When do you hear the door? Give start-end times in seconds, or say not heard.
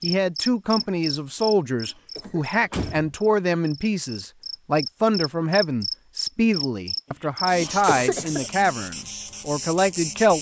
2.2-3.1.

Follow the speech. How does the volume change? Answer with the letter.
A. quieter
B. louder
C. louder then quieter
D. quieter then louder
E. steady
E.